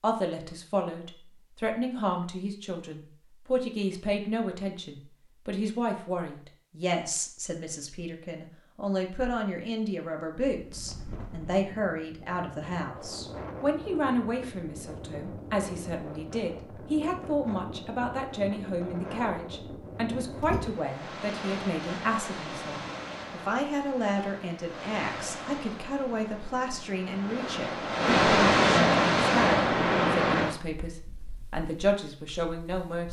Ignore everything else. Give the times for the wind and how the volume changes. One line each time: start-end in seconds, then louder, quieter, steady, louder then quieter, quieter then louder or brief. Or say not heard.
10.4-33.0 louder.